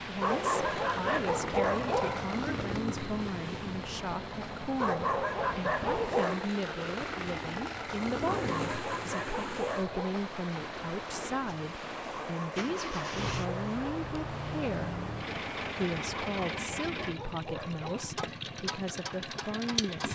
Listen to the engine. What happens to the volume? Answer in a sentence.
The loudness of the engine stays about the same.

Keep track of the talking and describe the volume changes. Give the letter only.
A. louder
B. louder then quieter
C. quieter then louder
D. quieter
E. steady
E.